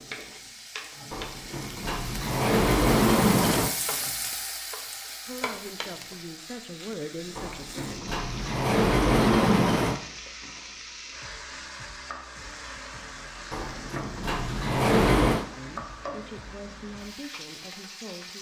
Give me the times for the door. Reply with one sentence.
You can hear the door from 1.1 to 3.7 s, from 7.3 to 10.0 s and from 13.5 to 15.4 s.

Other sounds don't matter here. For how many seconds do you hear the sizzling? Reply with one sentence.
The sizzling can be heard for 18 seconds in total.